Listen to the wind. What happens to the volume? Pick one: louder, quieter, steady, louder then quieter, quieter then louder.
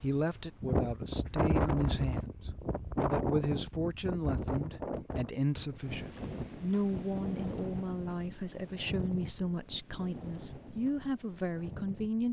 quieter.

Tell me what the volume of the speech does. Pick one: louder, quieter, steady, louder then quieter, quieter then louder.
steady.